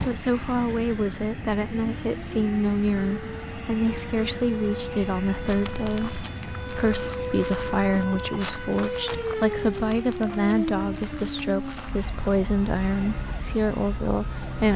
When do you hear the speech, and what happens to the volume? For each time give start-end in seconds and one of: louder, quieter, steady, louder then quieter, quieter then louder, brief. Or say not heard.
0.1-14.7 steady.